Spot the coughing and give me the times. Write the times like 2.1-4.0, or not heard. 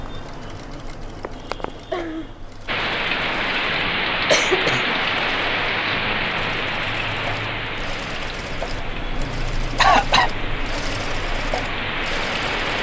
1.2-2.2, 4.3-5.0, 9.8-10.3.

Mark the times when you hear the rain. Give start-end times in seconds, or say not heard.
2.6-12.7.